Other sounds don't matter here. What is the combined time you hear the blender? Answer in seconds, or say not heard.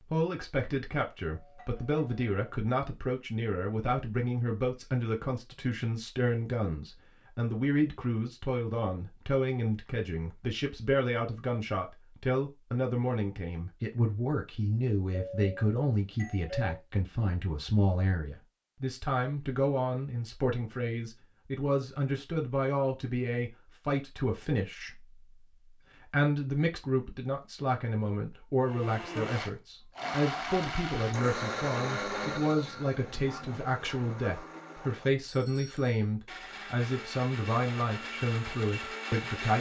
11 s.